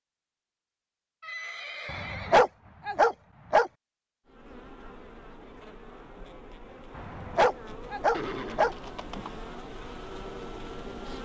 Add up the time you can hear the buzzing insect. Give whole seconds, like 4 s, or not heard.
7 s.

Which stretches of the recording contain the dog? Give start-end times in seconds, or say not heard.
1.9-3.7, 7.0-8.8.